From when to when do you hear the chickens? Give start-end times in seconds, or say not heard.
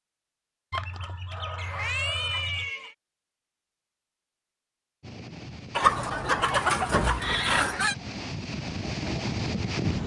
0.7-2.7, 5.8-8.0.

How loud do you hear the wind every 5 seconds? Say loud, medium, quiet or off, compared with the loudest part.
off, loud.